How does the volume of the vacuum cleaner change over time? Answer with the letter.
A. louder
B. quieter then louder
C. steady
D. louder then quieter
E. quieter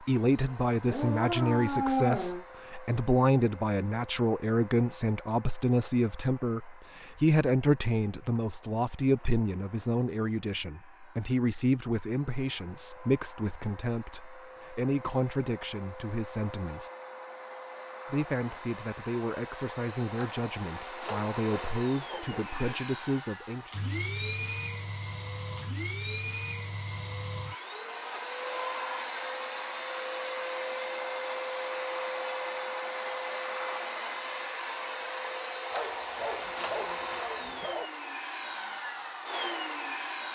A.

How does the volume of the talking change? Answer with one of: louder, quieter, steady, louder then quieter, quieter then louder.
quieter.